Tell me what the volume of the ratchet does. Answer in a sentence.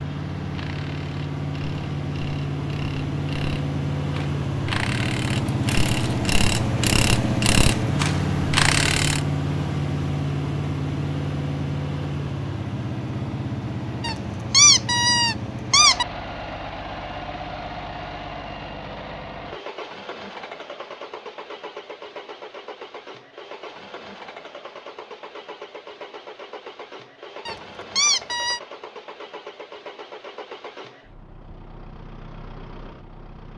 The volume of the ratchet goes up.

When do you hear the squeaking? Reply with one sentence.
You can hear the squeaking from 5.5 to 6.2 s, from 14.0 to 16.1 s and from 27.4 to 28.6 s.